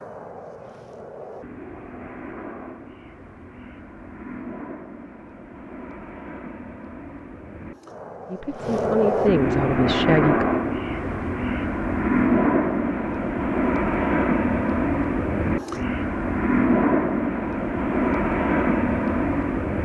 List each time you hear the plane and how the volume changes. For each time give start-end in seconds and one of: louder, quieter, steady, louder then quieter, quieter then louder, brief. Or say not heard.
0.0-19.8 louder.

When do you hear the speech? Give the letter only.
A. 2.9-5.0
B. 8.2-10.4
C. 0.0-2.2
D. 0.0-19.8
B.